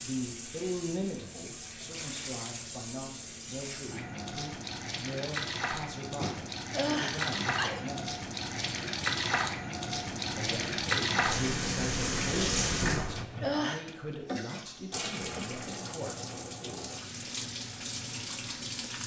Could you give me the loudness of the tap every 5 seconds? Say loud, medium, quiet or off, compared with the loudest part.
medium, loud, loud, medium.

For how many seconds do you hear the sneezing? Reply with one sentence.
You can hear the sneezing for 3 seconds altogether.